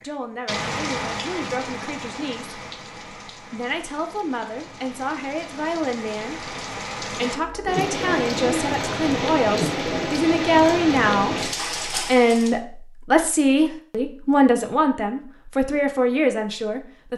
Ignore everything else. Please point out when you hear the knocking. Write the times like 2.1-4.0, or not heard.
not heard.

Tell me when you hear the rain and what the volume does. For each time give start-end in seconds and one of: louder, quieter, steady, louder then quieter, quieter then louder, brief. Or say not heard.
0.0-12.6 quieter then louder.